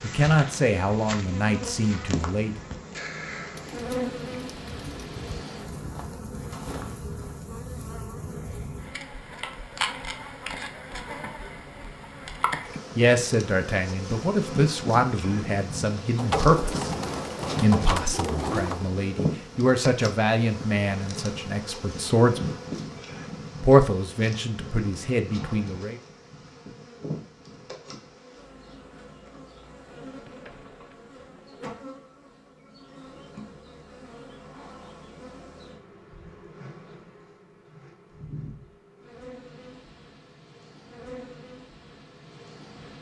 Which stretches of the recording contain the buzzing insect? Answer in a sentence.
You can hear the buzzing insect from 0.0 to 42.9 s.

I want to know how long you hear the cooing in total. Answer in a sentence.
The cooing can be heard for 6 seconds in total.